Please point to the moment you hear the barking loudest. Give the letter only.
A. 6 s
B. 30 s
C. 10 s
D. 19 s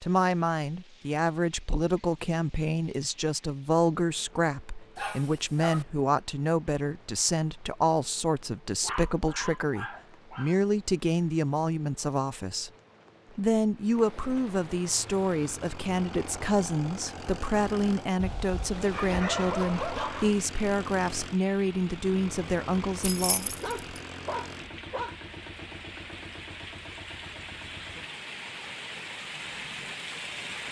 D.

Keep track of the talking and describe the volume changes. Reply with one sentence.
The loudness of the talking stays about the same.